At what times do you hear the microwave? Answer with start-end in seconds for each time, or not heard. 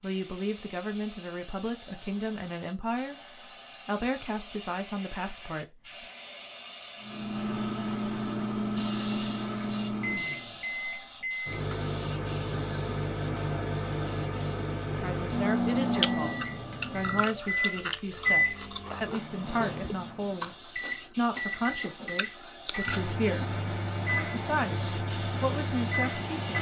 7.0-26.5.